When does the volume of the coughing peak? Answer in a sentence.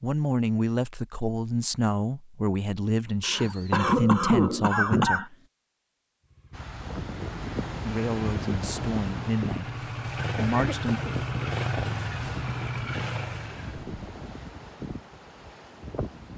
The volume of the coughing peaks at 4 seconds.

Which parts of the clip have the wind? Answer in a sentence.
You can hear the wind from 6.5 to 16.3 s.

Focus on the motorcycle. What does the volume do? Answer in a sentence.
The volume of the motorcycle goes up.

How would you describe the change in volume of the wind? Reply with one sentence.
The loudness of the wind goes down.